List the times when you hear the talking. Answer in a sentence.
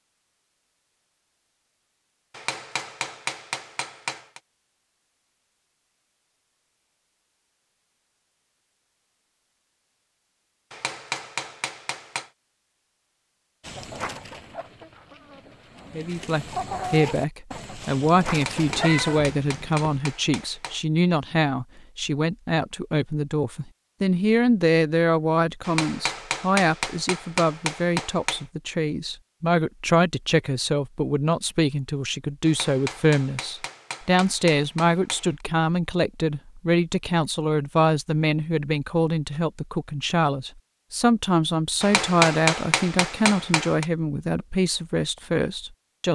The talking can be heard from 15.9 to 46.1 s.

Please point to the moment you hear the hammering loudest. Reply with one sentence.
The loudest moment of the hammering is at 42 seconds.